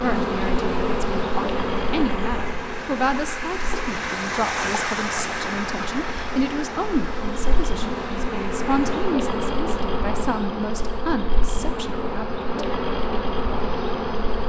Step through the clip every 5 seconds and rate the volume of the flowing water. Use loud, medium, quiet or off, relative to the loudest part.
loud, loud, off.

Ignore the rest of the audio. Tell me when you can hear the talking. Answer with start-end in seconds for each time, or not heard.
0.0-12.7.